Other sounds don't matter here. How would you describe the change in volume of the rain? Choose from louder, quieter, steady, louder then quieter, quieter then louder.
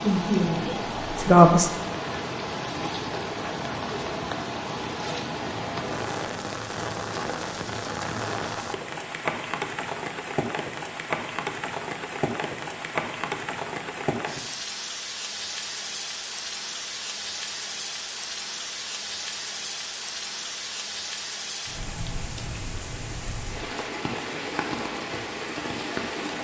steady.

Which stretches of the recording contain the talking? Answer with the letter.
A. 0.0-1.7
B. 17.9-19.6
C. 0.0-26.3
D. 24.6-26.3
A.